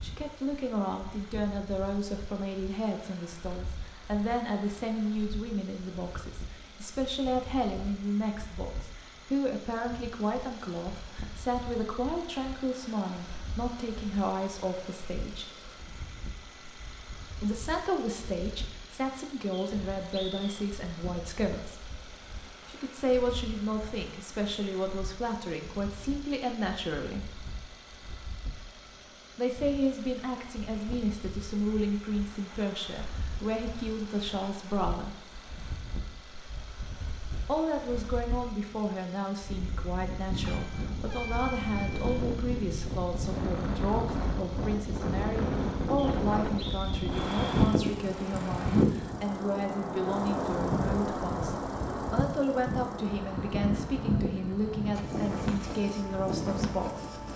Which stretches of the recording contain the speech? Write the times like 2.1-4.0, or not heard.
0.0-15.5, 17.4-21.9, 22.6-27.3, 29.4-35.2, 37.5-57.0.